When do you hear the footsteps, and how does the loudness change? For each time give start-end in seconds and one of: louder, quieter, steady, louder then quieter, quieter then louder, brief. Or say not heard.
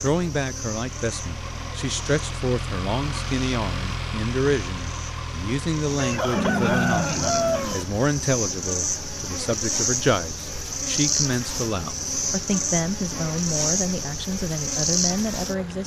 not heard.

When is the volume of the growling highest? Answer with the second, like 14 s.
7 s.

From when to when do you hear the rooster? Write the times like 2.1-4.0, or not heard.
6.0-7.8.